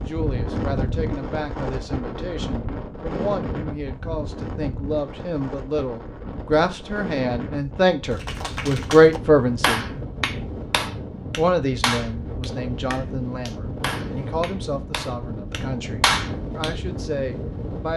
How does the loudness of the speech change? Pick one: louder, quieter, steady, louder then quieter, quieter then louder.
louder then quieter.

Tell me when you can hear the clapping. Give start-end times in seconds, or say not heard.
8.1-16.7.